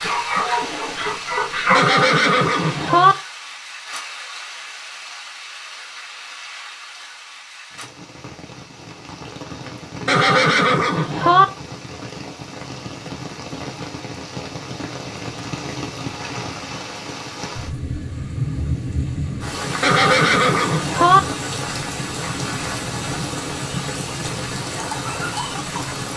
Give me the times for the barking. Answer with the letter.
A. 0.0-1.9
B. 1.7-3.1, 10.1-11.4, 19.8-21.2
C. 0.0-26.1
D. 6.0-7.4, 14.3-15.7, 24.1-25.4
A.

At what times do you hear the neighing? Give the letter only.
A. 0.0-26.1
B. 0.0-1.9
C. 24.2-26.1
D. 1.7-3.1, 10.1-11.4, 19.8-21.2
D.